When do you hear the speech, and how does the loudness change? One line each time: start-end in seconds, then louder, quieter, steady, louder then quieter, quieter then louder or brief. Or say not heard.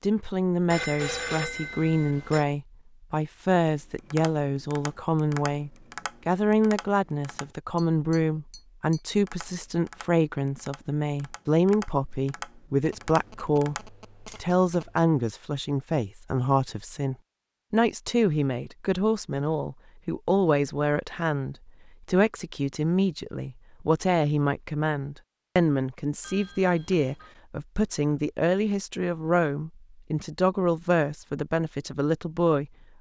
0.0-32.7 steady.